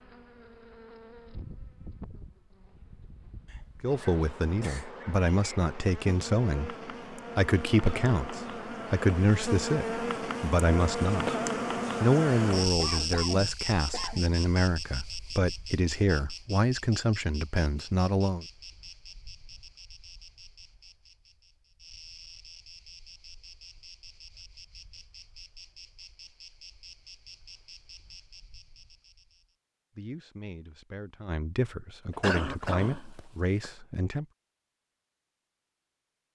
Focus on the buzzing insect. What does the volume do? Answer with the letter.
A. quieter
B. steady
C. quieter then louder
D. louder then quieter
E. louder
D.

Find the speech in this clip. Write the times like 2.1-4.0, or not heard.
3.8-11.3, 12.0-18.4, 29.9-34.2.